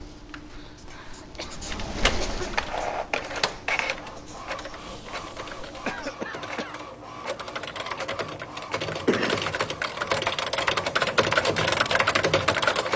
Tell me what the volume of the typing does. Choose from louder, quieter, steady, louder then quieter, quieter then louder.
louder.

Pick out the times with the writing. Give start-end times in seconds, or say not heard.
0.0-6.2.